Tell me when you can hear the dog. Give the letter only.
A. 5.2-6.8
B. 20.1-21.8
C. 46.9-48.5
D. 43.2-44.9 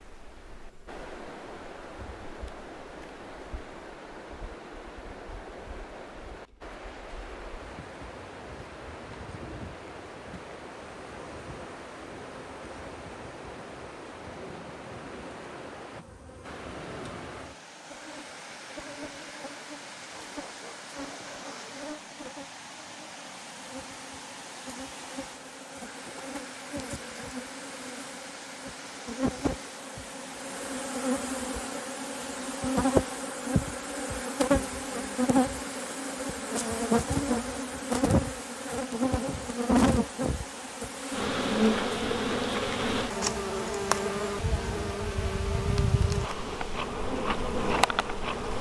B.